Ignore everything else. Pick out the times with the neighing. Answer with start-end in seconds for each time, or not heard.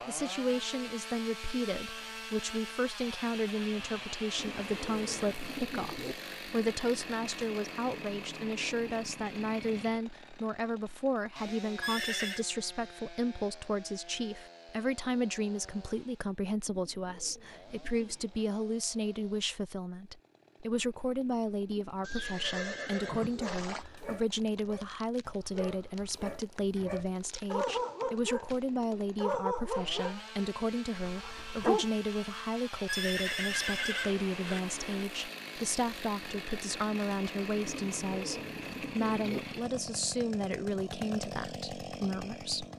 11.8-12.4, 22.0-23.9, 32.9-34.6.